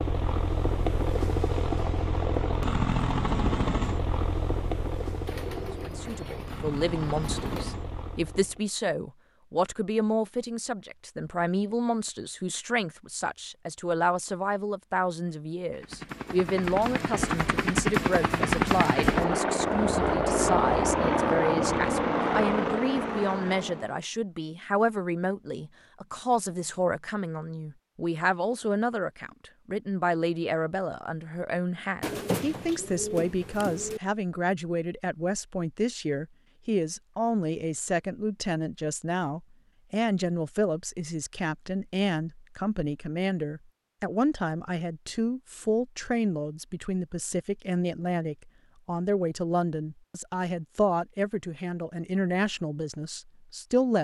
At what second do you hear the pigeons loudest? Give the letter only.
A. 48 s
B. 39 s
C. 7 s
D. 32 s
D.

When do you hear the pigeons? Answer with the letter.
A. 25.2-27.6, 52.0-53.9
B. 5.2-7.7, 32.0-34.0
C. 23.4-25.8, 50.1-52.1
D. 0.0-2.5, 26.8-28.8
B.